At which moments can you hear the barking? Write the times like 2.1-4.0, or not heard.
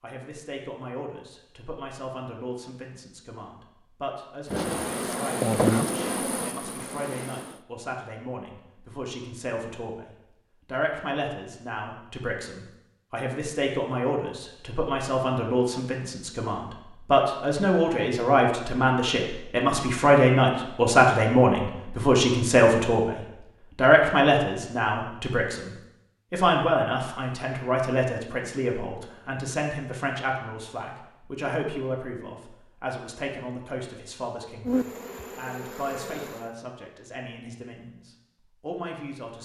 not heard.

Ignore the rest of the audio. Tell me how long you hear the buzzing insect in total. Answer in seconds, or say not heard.
5 s.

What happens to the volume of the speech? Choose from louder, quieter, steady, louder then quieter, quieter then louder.
louder then quieter.